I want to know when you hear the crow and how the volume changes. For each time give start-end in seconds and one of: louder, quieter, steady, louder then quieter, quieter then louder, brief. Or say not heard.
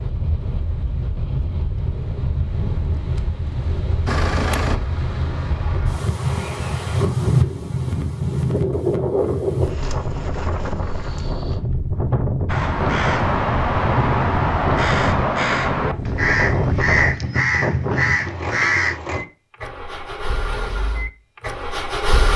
12.4-19.0 steady.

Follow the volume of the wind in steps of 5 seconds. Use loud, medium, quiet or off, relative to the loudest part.
medium, loud, loud, loud, off.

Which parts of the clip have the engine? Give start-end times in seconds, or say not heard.
4.0-7.0, 18.1-22.3.